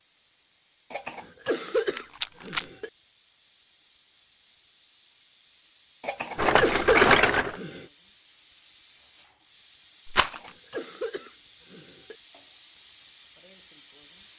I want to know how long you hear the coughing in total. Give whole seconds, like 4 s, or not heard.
6 s.